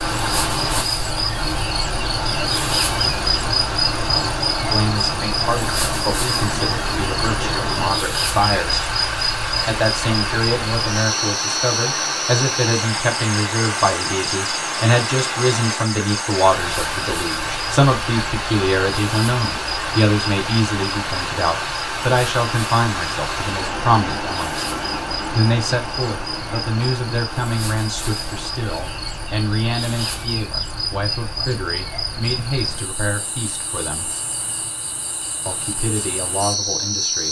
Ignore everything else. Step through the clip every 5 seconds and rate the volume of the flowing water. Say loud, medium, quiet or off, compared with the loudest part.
loud, loud, loud, loud, loud, medium, quiet, quiet.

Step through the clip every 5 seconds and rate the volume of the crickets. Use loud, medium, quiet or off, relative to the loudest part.
loud, loud, loud, medium, medium, medium, medium, loud.